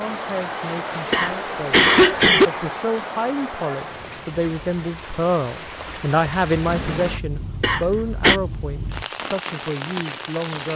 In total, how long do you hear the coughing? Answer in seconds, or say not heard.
2 s.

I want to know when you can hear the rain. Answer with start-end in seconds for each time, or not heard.
0.0-10.7.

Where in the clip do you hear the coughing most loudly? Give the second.
2 s.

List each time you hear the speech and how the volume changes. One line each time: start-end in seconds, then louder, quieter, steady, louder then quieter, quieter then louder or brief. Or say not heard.
0.0-10.7 louder then quieter.